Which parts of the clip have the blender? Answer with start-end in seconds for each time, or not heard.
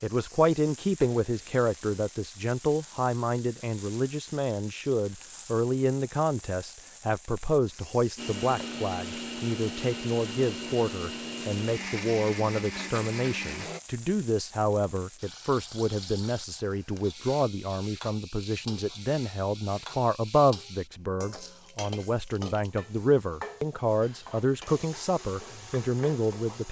8.2-13.8, 24.0-26.6.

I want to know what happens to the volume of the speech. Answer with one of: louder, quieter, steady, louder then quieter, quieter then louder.
steady.